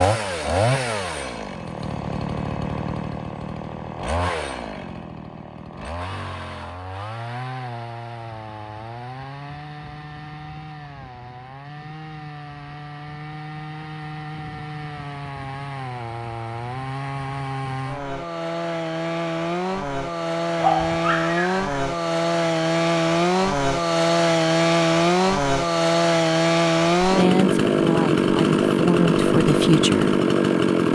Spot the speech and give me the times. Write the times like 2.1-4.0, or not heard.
27.0-30.1.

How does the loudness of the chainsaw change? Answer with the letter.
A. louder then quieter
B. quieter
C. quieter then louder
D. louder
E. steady
C.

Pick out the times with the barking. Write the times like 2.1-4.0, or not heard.
20.6-21.7.